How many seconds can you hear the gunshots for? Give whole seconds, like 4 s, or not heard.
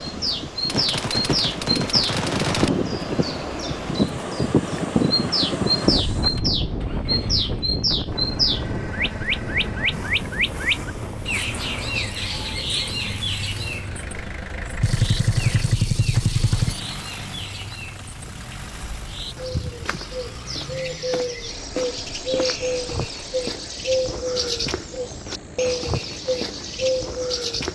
4 s.